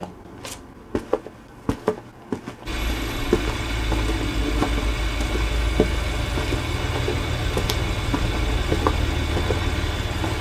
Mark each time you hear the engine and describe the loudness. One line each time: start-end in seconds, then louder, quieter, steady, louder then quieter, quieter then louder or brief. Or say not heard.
2.6-10.3 steady.